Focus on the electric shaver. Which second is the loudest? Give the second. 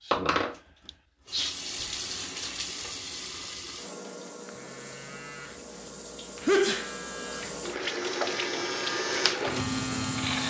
10 s.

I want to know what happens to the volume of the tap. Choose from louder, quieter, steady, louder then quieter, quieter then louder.
quieter then louder.